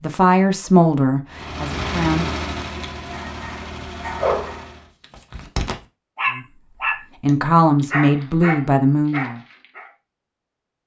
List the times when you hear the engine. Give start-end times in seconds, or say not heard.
1.3-5.0.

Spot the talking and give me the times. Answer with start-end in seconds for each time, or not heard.
0.0-2.4, 6.3-9.4.